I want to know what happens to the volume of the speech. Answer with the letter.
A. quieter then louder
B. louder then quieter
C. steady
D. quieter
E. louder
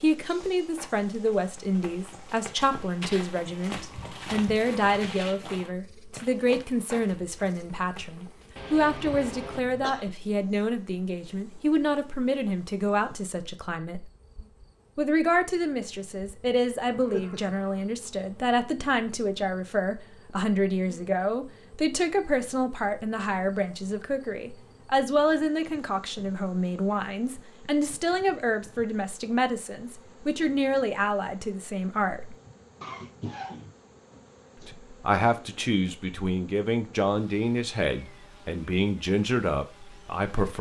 C.